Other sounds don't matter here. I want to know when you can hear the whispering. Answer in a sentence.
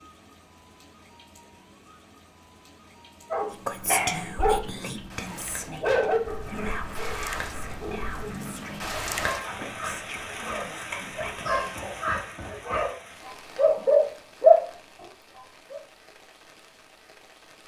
The whispering can be heard from 3.5 to 11.8 s.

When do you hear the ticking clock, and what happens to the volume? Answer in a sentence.
You can't hear the ticking clock here.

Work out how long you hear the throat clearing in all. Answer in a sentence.
The throat clearing can be heard for 2 seconds in total.